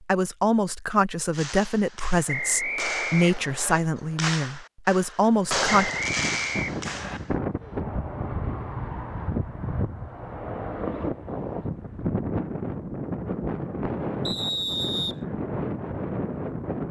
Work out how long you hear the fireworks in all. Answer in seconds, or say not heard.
6 s.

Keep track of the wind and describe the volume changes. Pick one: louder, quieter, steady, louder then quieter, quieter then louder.
steady.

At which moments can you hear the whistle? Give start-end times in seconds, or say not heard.
2.2-3.8, 5.8-7.2, 14.2-15.2.